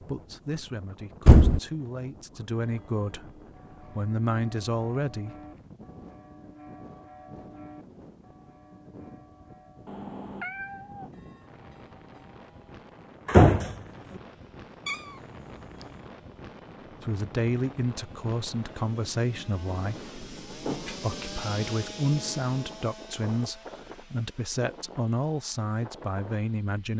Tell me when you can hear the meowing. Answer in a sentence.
You can hear the meowing from 9.8 to 11.1 s and from 14.8 to 16.0 s.